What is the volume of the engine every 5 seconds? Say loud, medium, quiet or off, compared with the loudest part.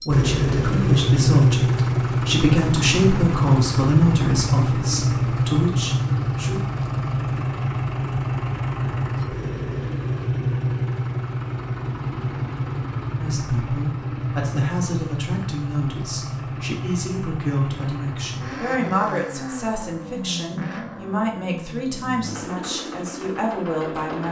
loud, loud, medium, medium, quiet.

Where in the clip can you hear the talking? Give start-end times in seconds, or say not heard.
0.1-6.6, 13.2-24.2.